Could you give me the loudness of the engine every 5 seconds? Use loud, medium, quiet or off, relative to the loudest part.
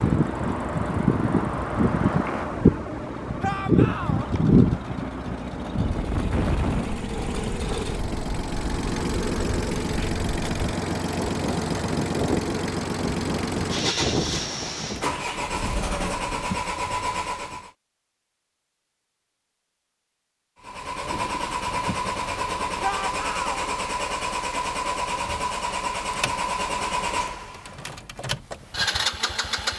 medium, loud, loud, loud, loud, loud.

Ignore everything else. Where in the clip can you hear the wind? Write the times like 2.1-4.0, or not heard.
0.0-15.2.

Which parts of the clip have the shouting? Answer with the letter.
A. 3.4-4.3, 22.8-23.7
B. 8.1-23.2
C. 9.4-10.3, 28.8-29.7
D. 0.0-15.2
A.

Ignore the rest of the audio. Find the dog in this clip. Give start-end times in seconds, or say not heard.
not heard.